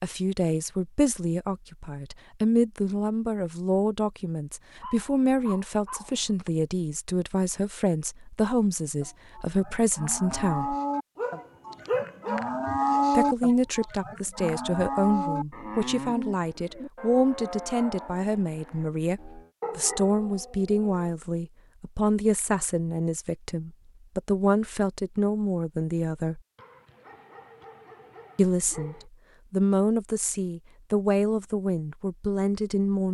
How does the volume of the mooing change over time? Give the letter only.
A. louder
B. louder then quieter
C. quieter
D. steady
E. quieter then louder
B.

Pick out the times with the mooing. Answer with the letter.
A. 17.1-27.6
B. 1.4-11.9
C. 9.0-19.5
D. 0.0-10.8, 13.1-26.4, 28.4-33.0
C.